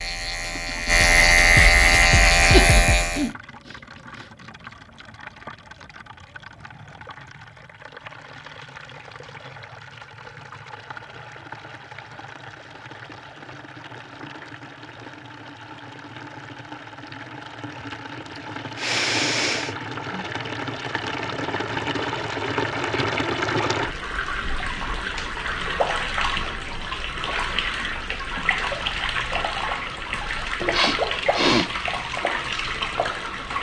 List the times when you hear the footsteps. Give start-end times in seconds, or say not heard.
not heard.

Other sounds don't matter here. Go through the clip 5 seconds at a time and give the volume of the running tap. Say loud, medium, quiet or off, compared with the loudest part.
quiet, quiet, quiet, medium, loud, loud, loud.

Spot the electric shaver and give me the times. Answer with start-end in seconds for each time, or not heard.
0.0-3.3.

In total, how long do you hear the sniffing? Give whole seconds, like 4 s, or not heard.
4 s.